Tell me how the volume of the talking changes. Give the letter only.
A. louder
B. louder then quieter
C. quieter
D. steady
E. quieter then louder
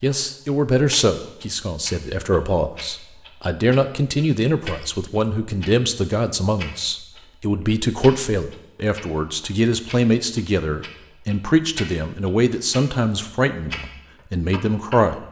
D.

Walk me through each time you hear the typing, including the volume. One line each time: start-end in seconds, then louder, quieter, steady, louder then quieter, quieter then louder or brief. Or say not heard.
not heard.